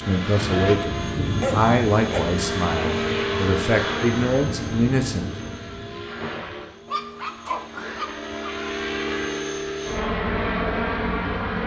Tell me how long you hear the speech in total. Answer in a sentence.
You can hear the speech for 5 seconds altogether.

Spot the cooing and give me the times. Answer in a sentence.
You can't hear the cooing here.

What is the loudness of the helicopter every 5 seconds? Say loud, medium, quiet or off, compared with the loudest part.
loud, medium, loud.